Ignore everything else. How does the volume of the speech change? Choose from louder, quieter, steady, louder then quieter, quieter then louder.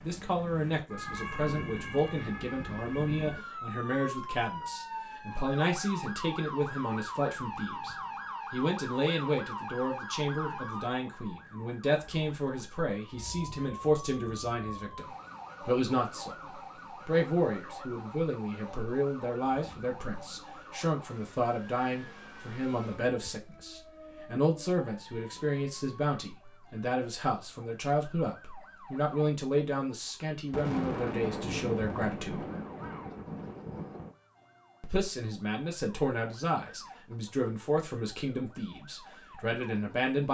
steady.